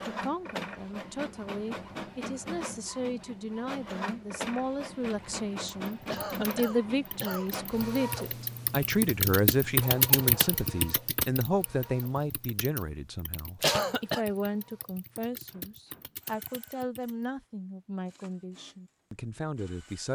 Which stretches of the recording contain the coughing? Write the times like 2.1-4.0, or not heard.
6.1-7.5, 13.6-14.2.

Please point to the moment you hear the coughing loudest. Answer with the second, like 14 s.
14 s.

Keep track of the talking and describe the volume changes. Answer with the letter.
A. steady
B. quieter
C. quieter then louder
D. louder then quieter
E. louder
D.